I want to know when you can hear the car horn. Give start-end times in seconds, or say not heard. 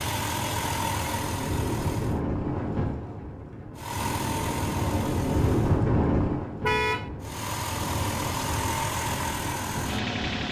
6.6-7.1.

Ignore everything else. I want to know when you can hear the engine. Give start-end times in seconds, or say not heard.
0.0-2.2, 3.8-5.8, 7.2-10.4.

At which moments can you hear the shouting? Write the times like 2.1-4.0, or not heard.
not heard.